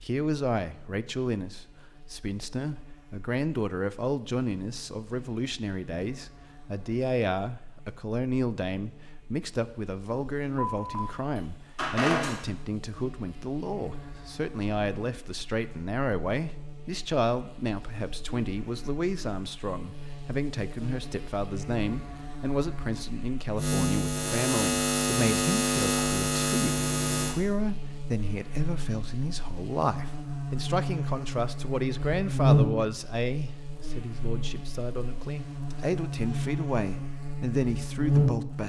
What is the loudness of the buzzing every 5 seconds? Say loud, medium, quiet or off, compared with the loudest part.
quiet, quiet, quiet, quiet, loud, loud, loud, loud.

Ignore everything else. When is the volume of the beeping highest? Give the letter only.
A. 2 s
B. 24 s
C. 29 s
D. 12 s
D.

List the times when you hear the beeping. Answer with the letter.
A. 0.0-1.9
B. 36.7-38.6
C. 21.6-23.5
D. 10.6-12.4
D.